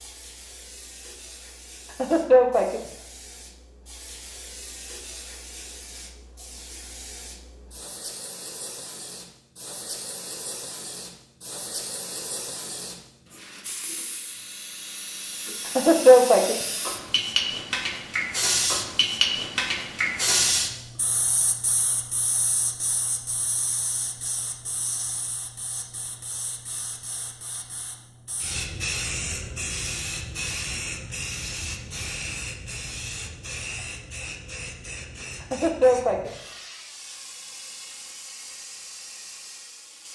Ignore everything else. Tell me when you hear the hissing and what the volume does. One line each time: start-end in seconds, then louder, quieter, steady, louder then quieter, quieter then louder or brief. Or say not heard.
0.0-40.1 louder then quieter.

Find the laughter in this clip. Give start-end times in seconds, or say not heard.
1.9-2.8, 15.7-16.6, 35.4-36.3.